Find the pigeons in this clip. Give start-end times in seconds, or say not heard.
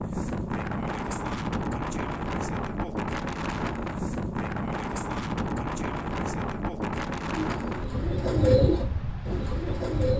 7.3-10.1.